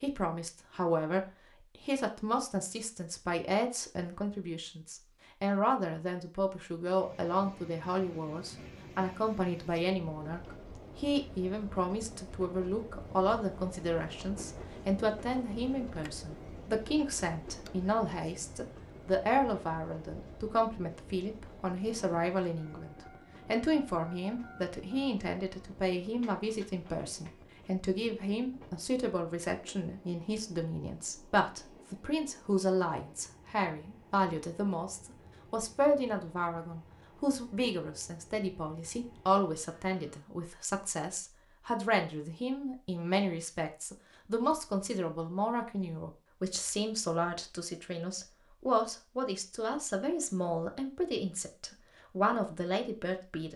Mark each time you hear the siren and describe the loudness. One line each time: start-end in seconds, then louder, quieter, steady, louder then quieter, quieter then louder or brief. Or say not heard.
not heard.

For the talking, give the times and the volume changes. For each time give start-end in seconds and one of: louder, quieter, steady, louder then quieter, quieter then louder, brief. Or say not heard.
0.0-53.5 steady.